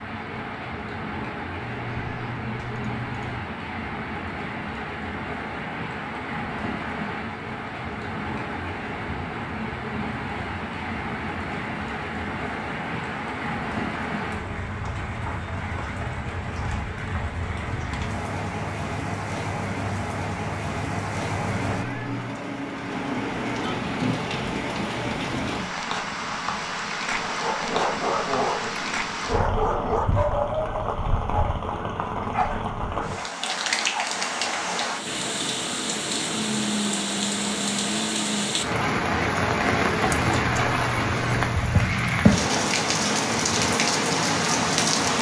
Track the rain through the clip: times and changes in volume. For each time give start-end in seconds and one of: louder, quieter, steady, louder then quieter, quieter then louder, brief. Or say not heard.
0.0-45.1 louder.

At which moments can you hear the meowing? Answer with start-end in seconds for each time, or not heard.
1.6-3.5, 21.6-22.4, 40.4-42.2.